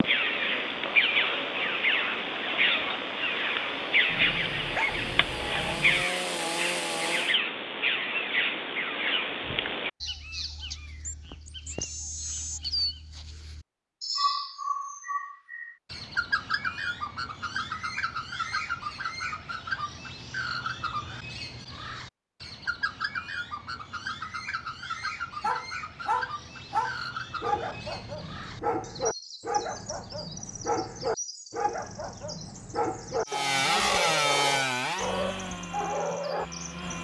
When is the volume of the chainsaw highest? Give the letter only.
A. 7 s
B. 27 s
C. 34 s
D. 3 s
C.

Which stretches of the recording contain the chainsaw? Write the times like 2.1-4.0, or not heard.
0.0-7.3, 33.2-37.0.